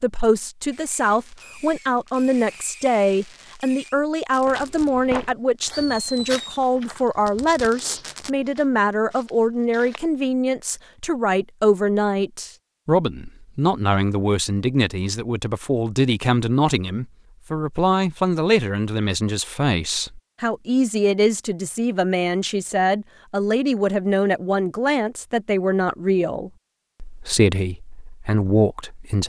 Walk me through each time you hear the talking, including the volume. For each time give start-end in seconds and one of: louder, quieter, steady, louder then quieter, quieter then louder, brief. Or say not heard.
0.0-29.2 steady.